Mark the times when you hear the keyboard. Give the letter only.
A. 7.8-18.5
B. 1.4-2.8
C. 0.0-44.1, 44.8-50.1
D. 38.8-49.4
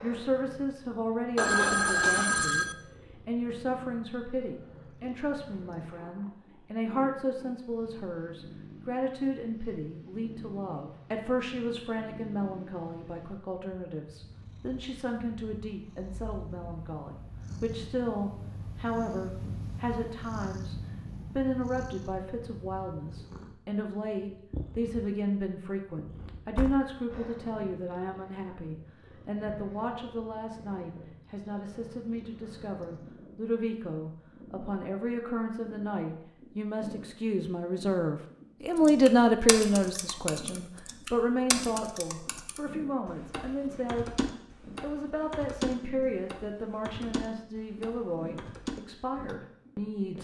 D.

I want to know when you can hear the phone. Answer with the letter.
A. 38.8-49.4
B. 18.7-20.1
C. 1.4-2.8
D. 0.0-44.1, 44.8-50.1
C.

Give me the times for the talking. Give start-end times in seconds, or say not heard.
0.0-44.1, 44.8-50.1.